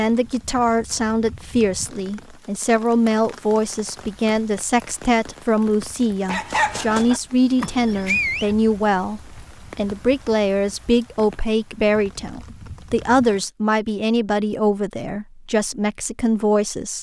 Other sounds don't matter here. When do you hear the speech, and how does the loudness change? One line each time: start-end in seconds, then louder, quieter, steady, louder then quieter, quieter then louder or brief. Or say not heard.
0.0-16.9 steady.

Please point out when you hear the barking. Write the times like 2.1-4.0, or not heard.
6.2-8.5.